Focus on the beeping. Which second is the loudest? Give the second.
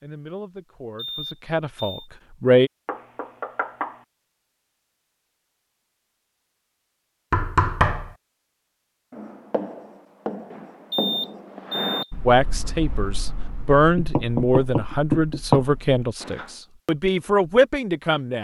11 s.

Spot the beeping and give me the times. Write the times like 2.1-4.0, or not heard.
0.9-2.1, 10.9-12.1.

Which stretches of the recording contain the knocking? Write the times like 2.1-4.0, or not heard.
2.9-4.0, 7.3-8.2, 13.9-15.7.